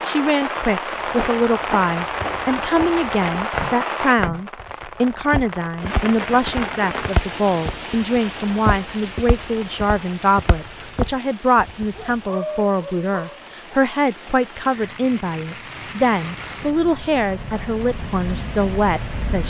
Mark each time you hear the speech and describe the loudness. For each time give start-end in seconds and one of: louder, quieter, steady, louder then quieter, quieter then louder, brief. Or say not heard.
0.0-19.4 steady.